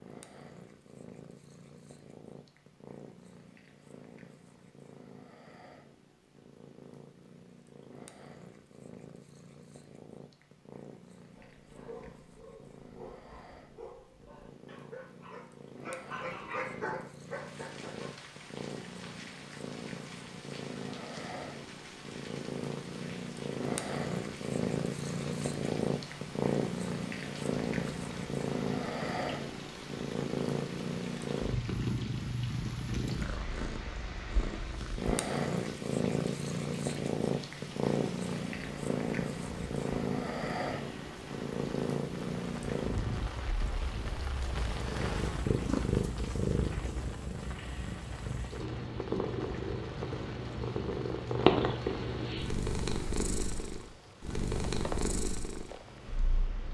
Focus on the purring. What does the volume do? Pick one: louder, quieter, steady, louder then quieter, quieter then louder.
louder.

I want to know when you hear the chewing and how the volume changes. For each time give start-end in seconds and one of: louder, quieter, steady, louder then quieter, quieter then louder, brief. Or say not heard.
not heard.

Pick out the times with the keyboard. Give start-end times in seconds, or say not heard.
not heard.